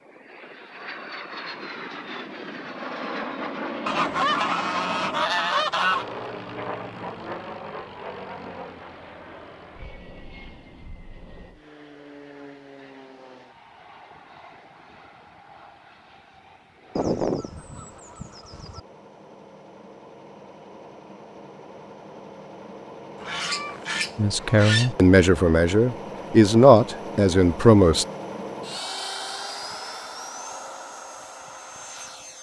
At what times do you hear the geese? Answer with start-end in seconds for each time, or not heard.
3.9-6.0, 16.9-18.8, 23.2-24.9.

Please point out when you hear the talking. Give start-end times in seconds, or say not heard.
24.1-28.1.